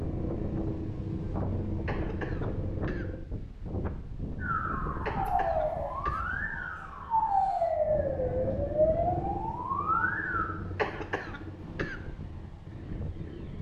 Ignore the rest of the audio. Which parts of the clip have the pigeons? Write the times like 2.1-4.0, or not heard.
not heard.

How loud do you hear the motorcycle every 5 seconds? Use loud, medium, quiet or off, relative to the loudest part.
loud, loud, medium.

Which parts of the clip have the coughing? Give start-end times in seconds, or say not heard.
1.9-3.0, 5.0-6.2, 10.8-12.0.